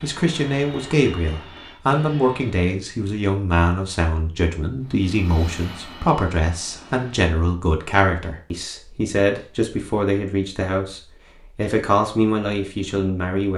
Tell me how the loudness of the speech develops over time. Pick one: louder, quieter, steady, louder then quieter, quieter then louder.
steady.